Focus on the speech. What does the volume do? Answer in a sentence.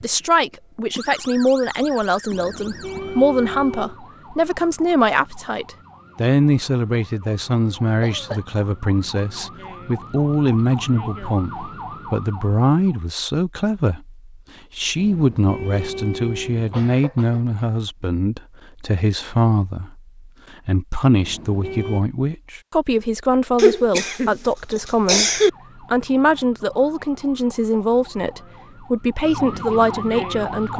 The loudness of the speech stays about the same.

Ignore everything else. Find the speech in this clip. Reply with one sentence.
The speech can be heard from 0.0 to 30.7 s.